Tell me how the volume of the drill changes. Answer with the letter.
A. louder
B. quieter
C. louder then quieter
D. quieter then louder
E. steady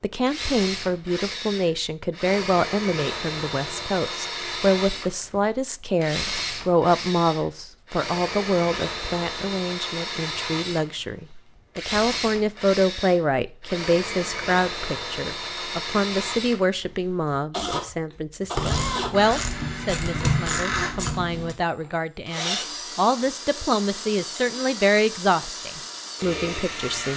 E.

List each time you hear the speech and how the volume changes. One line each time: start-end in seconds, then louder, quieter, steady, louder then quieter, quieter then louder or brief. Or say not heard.
0.0-27.1 steady.